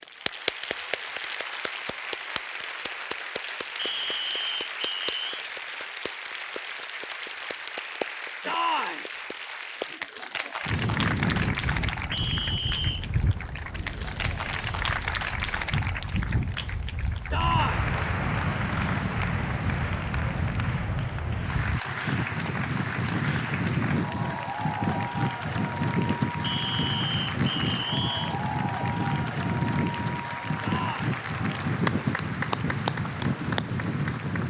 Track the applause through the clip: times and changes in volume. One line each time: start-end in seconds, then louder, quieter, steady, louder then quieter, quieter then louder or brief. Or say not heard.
0.0-34.4 steady.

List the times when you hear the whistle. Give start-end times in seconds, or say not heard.
3.8-5.5, 12.1-13.1, 26.4-28.4.